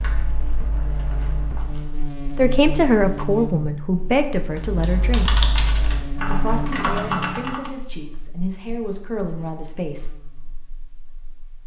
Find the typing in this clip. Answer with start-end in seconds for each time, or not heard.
0.0-1.9, 4.5-7.7.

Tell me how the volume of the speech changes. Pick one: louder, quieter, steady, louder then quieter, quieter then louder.
quieter.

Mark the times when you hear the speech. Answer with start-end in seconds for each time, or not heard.
2.4-5.5, 6.2-10.2.